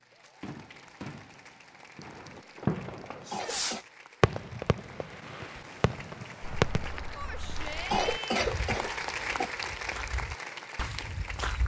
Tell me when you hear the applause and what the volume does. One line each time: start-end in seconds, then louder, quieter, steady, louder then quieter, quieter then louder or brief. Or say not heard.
0.0-11.6 louder.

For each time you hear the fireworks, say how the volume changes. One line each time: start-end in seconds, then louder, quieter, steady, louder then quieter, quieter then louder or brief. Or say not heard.
0.4-6.9 louder then quieter.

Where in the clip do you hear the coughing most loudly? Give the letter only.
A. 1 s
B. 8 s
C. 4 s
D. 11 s
B.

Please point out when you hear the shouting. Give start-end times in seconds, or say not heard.
3.2-3.6, 7.2-8.4.